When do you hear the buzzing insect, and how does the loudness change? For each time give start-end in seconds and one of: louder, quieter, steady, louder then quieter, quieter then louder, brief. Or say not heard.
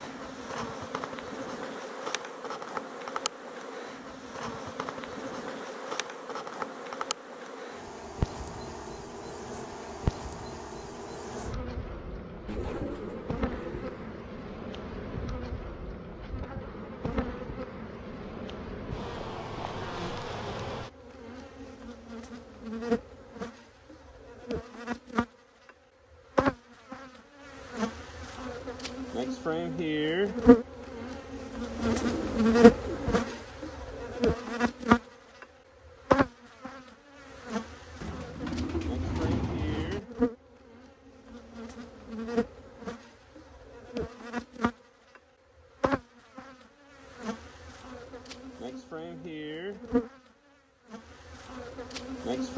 0.0-52.5 louder then quieter.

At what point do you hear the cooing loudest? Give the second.
39 s.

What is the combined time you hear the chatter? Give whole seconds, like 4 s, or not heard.
not heard.